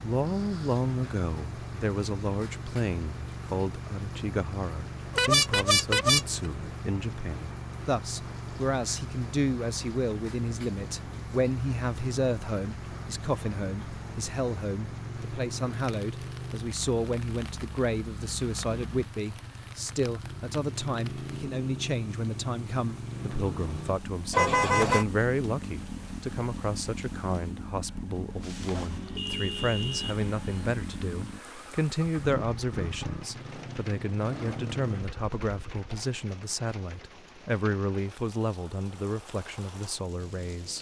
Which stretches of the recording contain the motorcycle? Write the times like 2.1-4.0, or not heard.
0.0-35.9.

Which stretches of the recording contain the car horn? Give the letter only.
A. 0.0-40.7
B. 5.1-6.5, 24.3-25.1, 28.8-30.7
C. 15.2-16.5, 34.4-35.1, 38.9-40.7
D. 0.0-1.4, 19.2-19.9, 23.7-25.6
B.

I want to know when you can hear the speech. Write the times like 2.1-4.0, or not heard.
0.0-40.7.